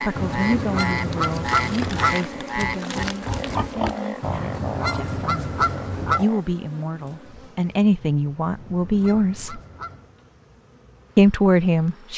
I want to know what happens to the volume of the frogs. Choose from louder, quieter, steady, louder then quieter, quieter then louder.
quieter.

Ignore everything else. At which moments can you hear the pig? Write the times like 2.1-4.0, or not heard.
2.5-4.0.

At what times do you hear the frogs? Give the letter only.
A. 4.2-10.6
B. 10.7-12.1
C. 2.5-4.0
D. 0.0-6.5
D.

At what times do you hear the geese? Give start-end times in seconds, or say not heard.
0.1-2.2, 4.2-6.2, 8.4-10.2.